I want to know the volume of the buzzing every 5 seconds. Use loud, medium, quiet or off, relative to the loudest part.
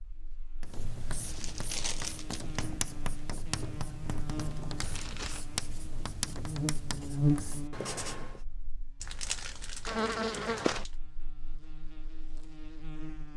medium, loud, loud.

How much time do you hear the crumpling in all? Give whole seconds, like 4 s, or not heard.
4 s.